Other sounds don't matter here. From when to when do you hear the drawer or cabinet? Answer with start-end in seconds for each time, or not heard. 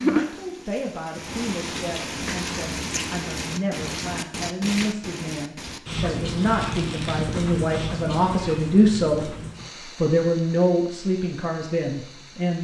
not heard.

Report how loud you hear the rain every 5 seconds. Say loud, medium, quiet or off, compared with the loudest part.
loud, loud, quiet.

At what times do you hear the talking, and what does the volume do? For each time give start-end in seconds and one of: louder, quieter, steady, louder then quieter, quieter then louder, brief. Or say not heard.
0.0-9.3 louder
10.0-12.5 brief.